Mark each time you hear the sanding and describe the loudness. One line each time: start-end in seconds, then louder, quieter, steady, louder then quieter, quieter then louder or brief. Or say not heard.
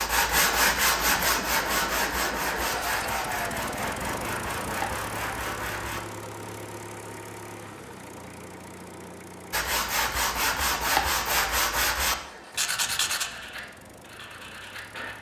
0.0-6.0 quieter
9.5-15.1 quieter.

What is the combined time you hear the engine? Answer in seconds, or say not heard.
15 s.